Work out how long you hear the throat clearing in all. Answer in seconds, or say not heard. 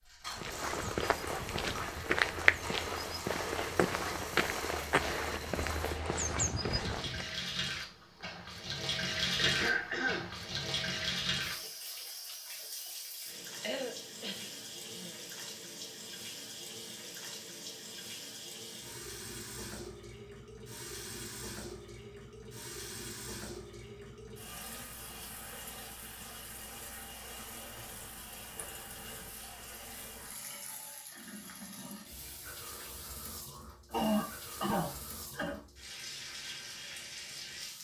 4 s.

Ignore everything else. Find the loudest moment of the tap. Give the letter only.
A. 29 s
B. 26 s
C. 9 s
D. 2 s
C.